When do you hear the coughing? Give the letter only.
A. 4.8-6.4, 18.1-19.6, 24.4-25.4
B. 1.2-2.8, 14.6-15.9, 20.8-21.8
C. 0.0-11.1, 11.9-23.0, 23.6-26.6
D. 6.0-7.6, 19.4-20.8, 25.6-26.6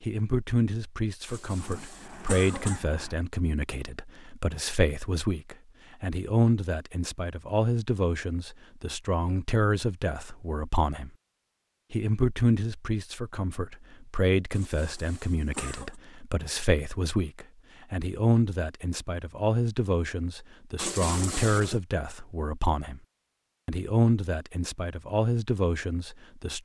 B.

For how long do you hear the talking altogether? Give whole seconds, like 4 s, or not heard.
25 s.